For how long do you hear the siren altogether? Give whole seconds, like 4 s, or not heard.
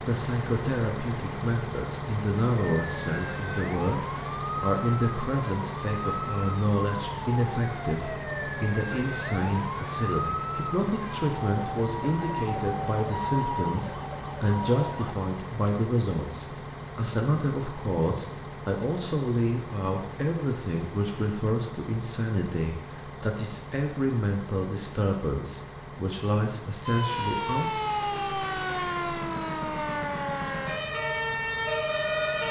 18 s.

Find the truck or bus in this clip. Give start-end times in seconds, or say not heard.
0.0-32.4.